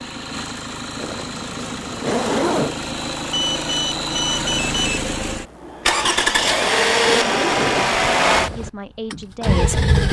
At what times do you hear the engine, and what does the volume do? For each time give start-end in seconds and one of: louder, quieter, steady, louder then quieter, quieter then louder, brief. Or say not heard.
0.0-10.0 louder.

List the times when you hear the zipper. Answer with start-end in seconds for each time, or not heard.
0.9-2.8, 6.0-8.0.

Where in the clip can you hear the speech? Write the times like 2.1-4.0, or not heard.
8.6-10.0.